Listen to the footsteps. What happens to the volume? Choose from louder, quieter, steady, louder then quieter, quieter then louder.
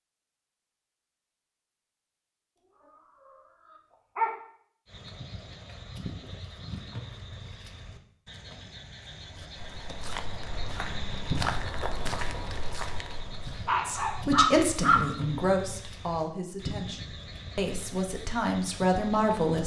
louder then quieter.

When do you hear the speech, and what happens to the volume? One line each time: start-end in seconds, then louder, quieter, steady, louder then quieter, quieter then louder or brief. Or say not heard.
13.8-19.6 quieter then louder.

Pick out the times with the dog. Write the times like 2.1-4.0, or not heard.
3.2-4.3, 13.7-15.0.